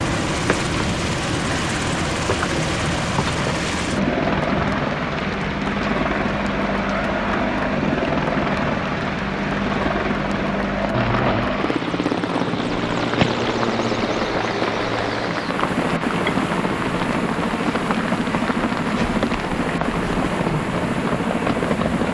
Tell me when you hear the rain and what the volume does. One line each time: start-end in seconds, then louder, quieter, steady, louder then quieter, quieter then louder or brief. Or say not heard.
0.0-22.0 steady.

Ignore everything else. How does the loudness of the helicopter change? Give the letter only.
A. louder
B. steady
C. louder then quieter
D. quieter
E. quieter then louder
B.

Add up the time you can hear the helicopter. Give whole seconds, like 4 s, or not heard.
22 s.